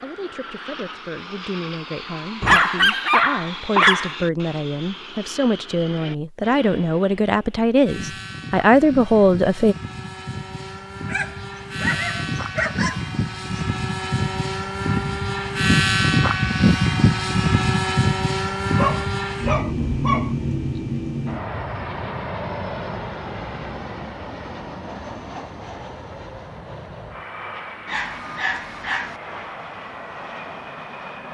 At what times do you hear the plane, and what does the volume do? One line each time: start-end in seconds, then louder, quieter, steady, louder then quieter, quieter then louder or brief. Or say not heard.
0.0-31.3 louder then quieter.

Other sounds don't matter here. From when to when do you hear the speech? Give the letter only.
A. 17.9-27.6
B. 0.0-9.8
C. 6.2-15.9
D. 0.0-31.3
B.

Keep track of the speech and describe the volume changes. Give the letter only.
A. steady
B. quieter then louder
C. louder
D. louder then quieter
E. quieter
C.